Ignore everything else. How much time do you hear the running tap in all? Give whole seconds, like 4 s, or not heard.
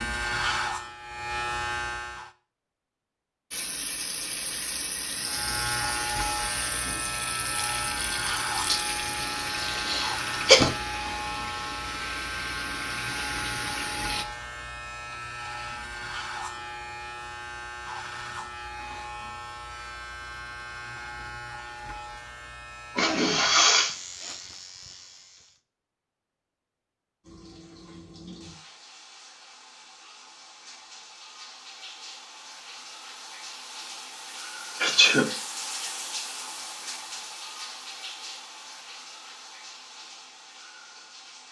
25 s.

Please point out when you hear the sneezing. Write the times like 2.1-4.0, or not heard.
8.7-10.7, 22.9-23.9, 34.8-35.3.